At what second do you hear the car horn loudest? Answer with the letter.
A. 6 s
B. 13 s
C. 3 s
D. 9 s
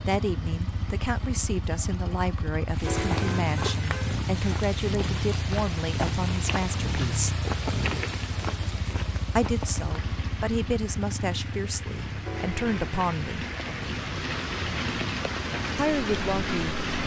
C.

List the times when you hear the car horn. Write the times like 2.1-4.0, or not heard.
2.9-4.2, 12.2-12.9.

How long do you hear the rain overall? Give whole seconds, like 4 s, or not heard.
14 s.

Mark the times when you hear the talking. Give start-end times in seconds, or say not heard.
0.1-7.3, 9.3-13.4, 15.8-16.8.